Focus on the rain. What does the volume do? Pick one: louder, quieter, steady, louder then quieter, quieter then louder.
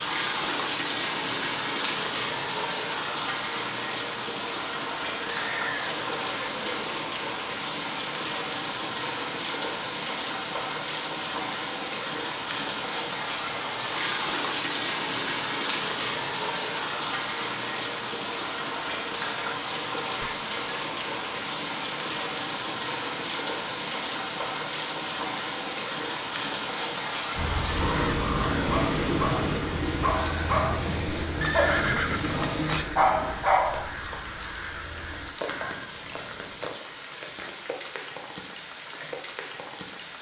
quieter.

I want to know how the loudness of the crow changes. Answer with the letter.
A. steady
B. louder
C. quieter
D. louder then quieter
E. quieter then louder
C.